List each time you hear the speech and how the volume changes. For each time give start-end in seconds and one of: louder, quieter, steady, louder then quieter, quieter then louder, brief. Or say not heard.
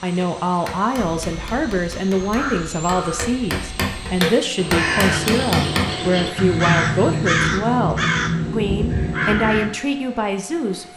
0.0-10.9 steady.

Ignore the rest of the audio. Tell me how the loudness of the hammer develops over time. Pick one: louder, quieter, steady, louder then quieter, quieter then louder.
louder.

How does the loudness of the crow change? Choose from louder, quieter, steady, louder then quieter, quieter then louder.
louder.